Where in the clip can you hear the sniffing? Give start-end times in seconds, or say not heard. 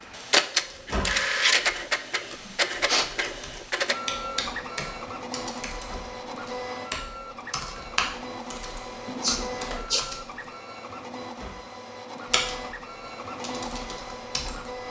2.5-3.0, 9.1-10.1.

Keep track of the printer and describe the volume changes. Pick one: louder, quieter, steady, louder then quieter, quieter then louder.
quieter.